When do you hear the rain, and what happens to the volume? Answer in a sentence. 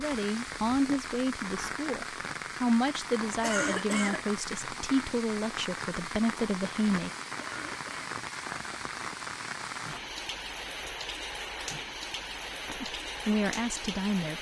The rain can be heard from 0.0 to 14.3 s, at a steady volume.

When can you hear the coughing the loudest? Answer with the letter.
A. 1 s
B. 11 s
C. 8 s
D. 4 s
D.